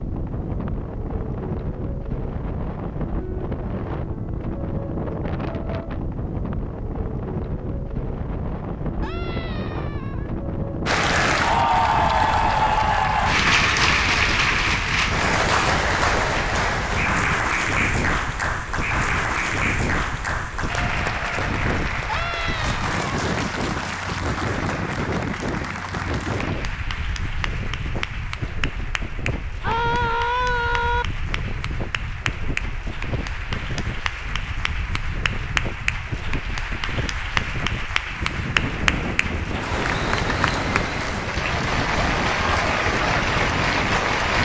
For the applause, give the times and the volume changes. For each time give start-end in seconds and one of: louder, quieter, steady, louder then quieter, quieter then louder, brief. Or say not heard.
10.8-44.4 quieter then louder.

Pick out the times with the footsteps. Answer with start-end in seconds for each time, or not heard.
not heard.